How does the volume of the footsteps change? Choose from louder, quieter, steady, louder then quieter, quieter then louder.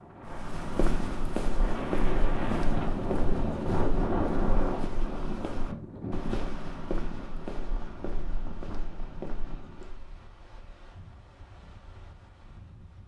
quieter.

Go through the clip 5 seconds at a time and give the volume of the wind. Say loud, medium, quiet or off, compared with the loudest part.
loud, medium, quiet.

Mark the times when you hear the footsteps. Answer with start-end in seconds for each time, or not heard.
0.2-10.1.